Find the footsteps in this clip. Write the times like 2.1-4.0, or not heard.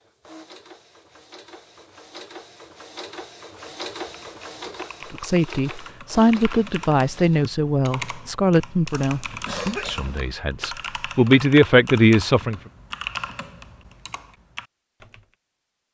not heard.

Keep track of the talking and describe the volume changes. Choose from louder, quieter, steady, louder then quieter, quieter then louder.
quieter then louder.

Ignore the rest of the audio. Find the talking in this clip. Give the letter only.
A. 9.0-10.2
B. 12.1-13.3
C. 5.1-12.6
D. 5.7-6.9
C.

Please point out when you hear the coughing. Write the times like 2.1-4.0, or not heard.
9.0-10.2.